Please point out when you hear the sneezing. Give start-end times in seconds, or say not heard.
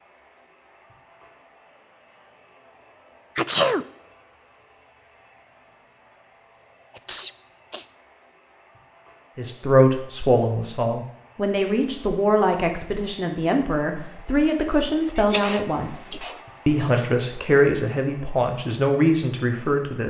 3.4-3.9, 7.0-7.8, 15.2-17.1.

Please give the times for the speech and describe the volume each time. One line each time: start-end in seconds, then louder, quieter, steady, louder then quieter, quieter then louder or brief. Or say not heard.
9.3-20.0 steady.